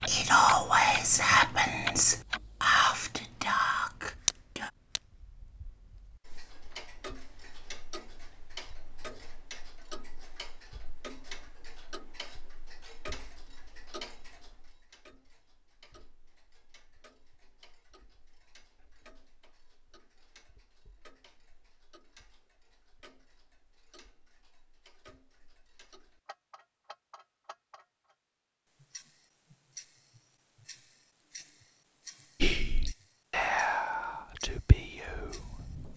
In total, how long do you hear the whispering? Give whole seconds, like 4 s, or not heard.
8 s.